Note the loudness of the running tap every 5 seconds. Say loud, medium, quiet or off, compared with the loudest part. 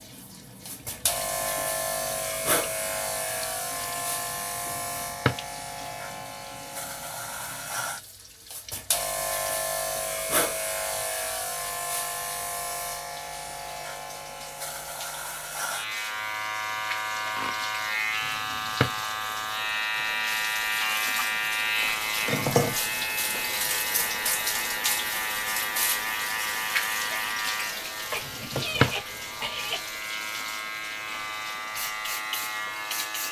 quiet, quiet, quiet, medium, loud, loud, medium.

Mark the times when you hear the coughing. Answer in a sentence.
You can hear the coughing from 28.1 to 29.8 s.